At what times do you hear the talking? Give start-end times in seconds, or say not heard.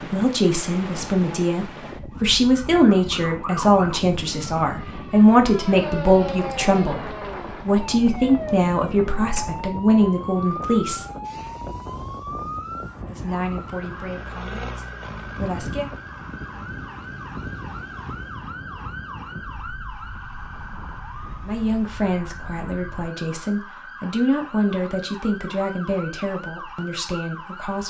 0.0-11.1, 13.1-15.9, 21.4-27.8.